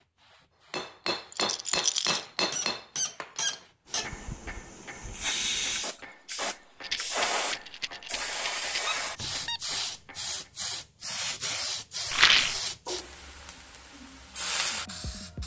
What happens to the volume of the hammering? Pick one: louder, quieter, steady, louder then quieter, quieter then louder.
quieter.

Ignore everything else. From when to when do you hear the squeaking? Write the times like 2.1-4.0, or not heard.
2.1-4.1, 8.1-9.6.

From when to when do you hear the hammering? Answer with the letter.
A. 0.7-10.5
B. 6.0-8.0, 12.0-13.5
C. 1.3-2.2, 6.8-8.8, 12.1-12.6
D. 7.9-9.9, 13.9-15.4
A.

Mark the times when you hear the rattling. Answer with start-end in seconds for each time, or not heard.
1.3-2.2, 6.8-8.8, 12.1-12.6.